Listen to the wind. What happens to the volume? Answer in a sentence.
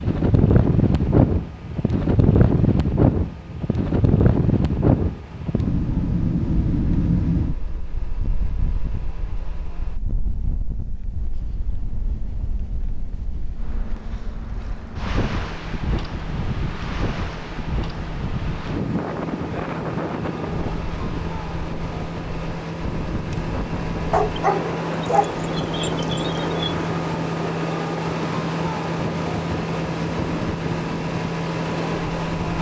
The loudness of the wind goes down.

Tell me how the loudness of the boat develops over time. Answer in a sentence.
The volume of the boat goes up.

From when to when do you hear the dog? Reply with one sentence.
The dog can be heard from 24.1 to 26.6 s.